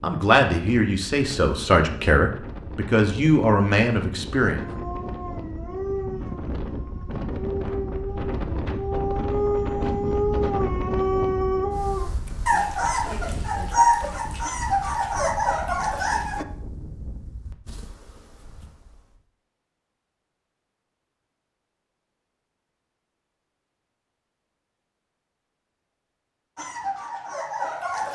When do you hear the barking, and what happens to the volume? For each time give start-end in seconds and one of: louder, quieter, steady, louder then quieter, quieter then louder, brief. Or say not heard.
4.5-16.4 louder
26.6-28.1 brief.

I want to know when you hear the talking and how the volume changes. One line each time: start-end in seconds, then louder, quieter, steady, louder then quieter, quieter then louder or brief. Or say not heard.
0.0-4.7 steady.